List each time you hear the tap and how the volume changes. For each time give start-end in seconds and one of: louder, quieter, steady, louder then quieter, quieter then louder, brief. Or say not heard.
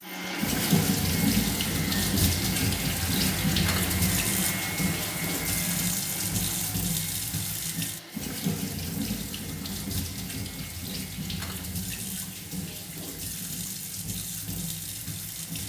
0.0-15.6 quieter.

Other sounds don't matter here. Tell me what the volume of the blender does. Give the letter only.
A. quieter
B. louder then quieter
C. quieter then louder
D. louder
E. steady
A.